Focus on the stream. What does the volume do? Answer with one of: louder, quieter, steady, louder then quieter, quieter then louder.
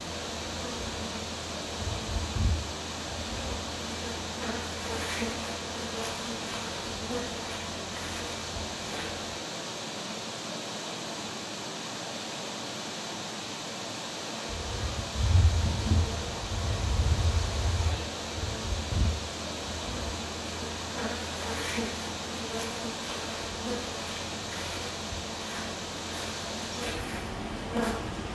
steady.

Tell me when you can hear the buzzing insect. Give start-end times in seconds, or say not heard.
0.0-9.2, 14.5-28.2.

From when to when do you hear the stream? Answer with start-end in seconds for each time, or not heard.
0.0-28.3.